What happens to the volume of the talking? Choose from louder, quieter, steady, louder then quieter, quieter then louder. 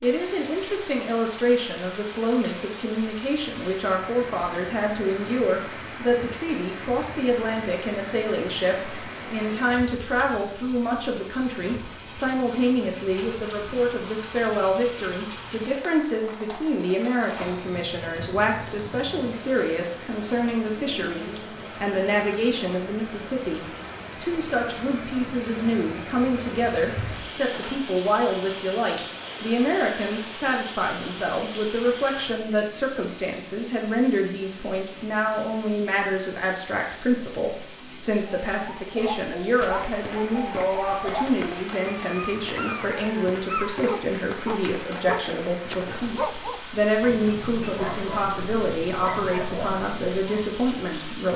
steady.